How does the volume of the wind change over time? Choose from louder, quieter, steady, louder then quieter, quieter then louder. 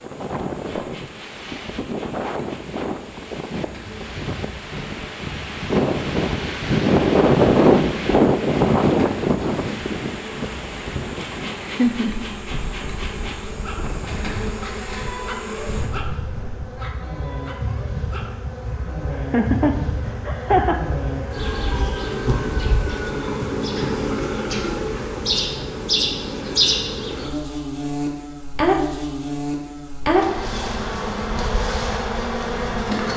louder then quieter.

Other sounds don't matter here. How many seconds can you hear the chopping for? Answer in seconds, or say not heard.
not heard.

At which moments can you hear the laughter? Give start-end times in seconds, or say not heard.
11.6-12.2, 19.1-20.9.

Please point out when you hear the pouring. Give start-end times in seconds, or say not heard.
not heard.